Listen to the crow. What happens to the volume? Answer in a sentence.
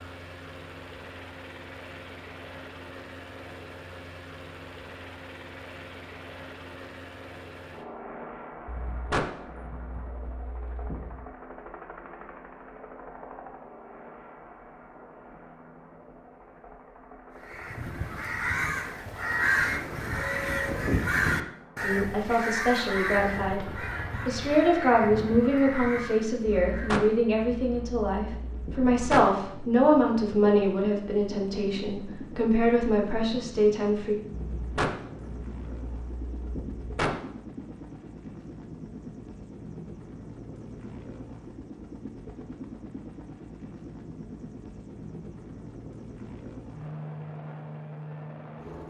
The volume of the crow goes down.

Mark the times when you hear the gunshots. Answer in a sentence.
The gunshots can be heard from 8.7 to 11.2 s, from 26.7 to 29.3 s and from 34.3 to 37.2 s.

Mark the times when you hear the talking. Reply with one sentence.
The talking can be heard from 21.8 to 34.2 s.